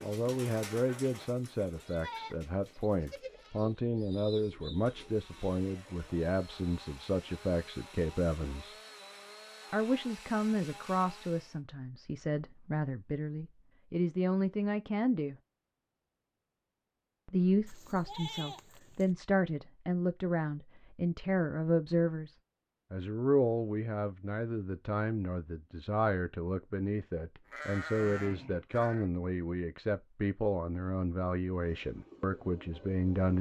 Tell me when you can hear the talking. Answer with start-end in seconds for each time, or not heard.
0.0-8.8, 9.7-15.3, 17.2-33.3.